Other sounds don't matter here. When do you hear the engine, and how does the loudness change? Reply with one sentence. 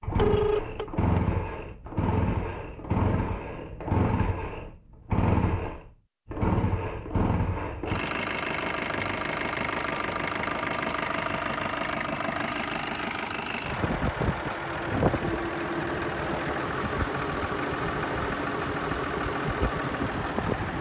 You can hear the engine from 0.0 to 20.7 s, at a steady volume.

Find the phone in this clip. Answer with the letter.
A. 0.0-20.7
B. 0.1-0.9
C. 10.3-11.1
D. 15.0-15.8
B.